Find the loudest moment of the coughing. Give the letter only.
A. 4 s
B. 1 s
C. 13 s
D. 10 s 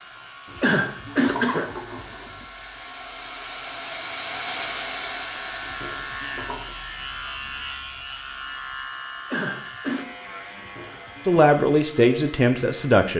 B.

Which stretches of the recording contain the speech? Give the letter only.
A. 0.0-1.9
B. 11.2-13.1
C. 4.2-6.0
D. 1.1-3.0
B.